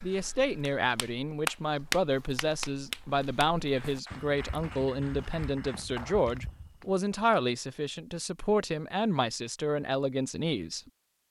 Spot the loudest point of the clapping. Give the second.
2 s.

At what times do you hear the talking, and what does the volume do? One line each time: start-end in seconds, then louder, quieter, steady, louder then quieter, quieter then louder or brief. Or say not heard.
0.0-10.8 steady.